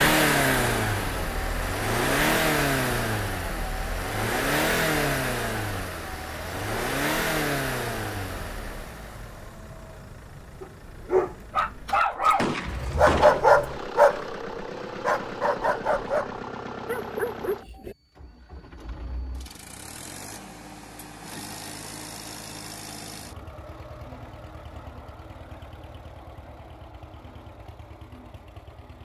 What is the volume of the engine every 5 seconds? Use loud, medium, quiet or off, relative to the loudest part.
loud, medium, quiet, quiet, quiet, quiet.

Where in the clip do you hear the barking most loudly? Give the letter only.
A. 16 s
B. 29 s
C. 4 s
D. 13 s
D.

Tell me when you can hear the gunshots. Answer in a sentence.
The gunshots can be heard from 12.3 to 13.4 s.